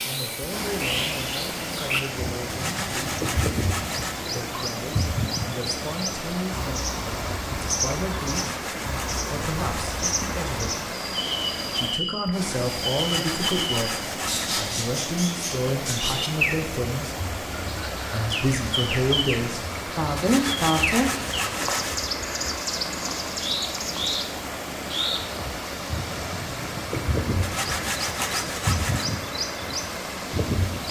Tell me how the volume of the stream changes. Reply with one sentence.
The volume of the stream stays about the same.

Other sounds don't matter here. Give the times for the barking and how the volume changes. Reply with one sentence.
You can't hear the barking here.